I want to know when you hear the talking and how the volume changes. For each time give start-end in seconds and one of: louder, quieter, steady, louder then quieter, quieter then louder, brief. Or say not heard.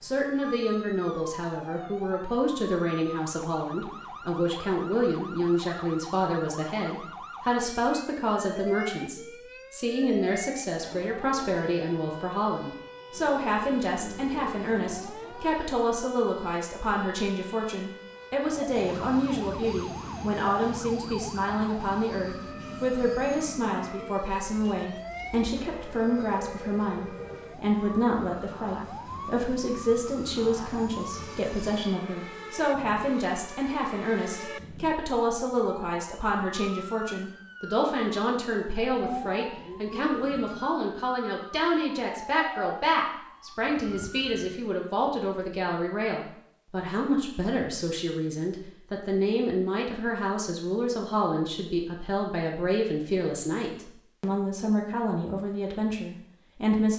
0.0-56.9 steady.